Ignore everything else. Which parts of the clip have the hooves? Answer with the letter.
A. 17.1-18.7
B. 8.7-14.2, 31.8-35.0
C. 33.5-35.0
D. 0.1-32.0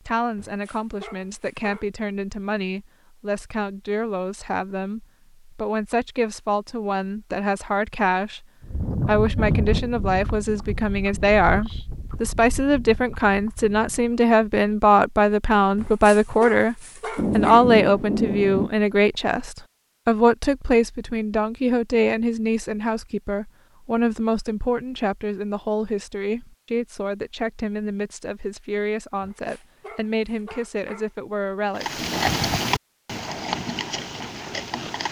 B.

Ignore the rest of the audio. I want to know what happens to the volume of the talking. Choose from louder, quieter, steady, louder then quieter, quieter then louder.
louder then quieter.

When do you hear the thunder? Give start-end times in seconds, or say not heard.
17.1-18.7.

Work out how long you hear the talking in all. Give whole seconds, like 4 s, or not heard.
32 s.